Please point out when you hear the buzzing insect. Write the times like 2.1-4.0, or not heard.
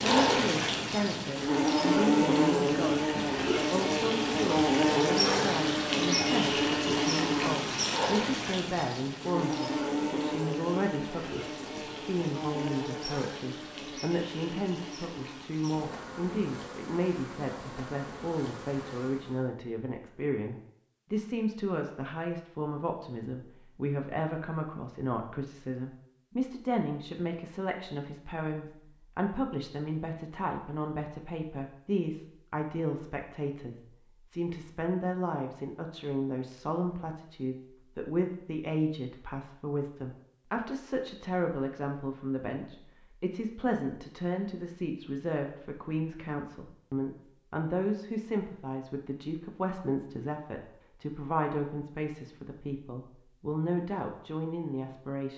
0.0-19.5.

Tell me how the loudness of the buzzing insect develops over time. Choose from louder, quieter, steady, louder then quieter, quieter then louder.
quieter.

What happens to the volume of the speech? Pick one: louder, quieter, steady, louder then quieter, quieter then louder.
steady.